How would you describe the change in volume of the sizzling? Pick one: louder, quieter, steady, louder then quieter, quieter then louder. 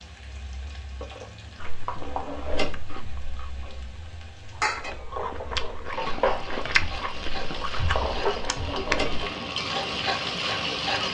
louder.